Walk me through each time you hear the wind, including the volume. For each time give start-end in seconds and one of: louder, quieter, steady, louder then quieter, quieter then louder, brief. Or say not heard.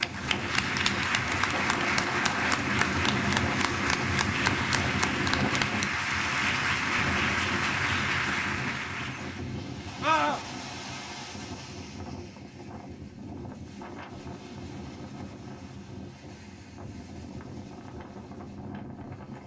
0.0-19.4 quieter.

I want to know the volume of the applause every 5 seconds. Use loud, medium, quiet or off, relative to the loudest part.
loud, loud, off, off.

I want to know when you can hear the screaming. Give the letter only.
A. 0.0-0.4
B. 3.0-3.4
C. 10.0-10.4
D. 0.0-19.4
C.